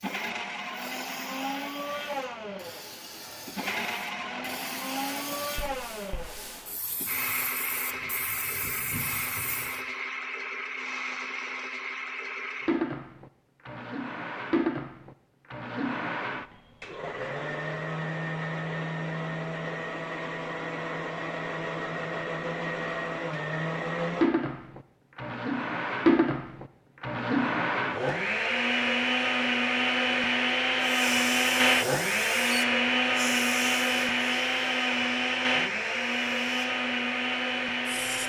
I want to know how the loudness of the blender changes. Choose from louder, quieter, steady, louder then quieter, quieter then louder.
louder.